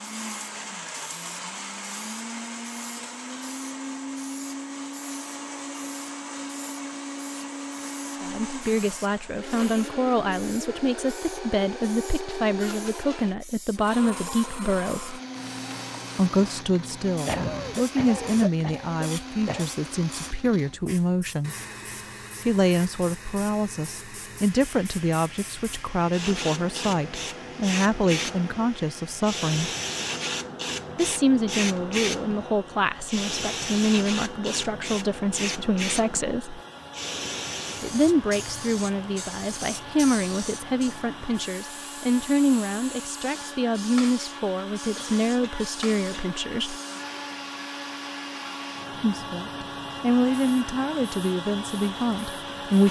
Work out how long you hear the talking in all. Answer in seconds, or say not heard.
38 s.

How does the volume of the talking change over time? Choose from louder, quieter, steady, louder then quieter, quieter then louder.
steady.